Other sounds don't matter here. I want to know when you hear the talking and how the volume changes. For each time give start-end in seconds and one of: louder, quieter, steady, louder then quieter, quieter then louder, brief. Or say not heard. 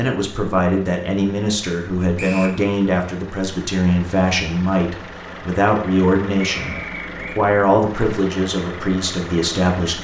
0.0-9.9 steady.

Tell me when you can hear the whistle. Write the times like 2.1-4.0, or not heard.
2.1-2.6, 6.5-7.4.